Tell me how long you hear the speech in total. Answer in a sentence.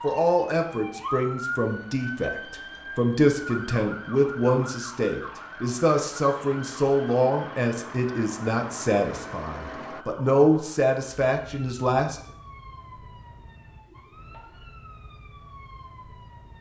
The speech can be heard for 12 seconds in total.